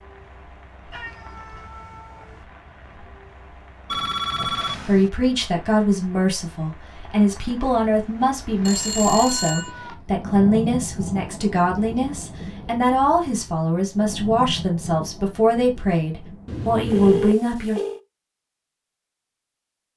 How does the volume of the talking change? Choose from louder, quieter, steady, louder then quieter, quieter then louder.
steady.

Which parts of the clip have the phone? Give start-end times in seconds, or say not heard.
3.9-5.1, 8.7-9.7, 16.9-18.0.